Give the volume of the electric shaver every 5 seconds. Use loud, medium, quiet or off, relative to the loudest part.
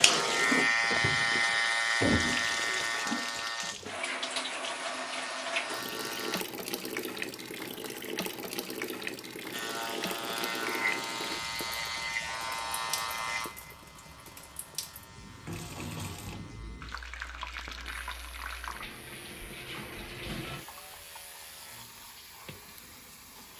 loud, medium, medium, quiet, quiet.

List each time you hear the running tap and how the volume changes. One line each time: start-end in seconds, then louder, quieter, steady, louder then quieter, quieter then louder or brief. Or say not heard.
0.0-23.5 quieter.